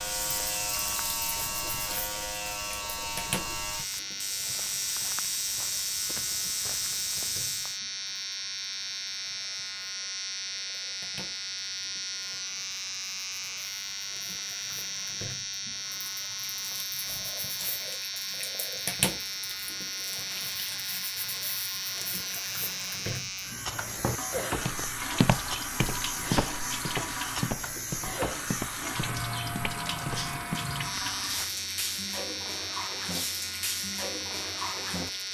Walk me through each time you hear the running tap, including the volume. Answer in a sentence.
The running tap can be heard from 0.0 to 35.2 s, getting quieter then louder.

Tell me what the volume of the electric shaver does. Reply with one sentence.
The volume of the electric shaver stays about the same.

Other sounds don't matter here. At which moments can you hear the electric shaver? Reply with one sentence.
You can hear the electric shaver from 0.0 to 35.2 s.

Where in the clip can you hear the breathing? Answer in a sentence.
The breathing can't be heard in this clip.